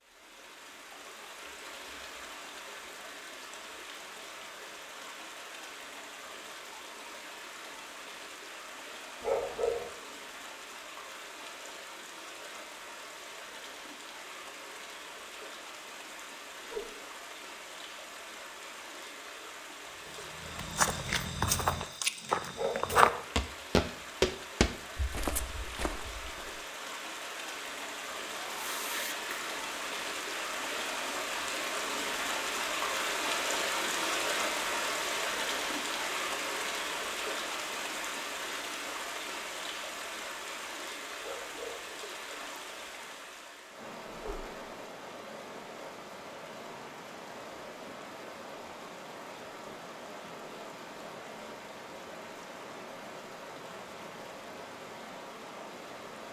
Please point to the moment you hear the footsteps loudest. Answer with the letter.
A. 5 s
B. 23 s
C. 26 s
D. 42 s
B.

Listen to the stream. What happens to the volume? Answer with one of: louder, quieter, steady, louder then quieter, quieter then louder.
louder then quieter.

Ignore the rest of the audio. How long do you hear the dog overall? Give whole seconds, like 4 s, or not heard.
2 s.